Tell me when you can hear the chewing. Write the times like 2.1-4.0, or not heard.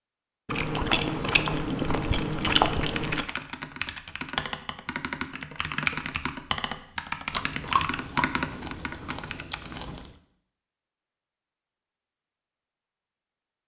0.5-3.3, 7.3-10.2.